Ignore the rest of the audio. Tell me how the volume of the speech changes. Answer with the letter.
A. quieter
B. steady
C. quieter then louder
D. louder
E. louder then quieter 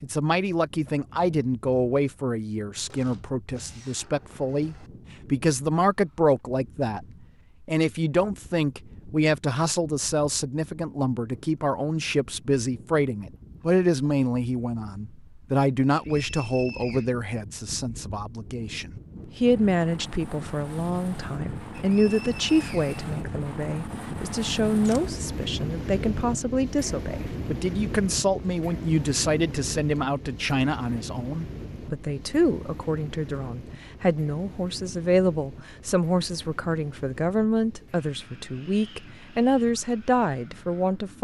B.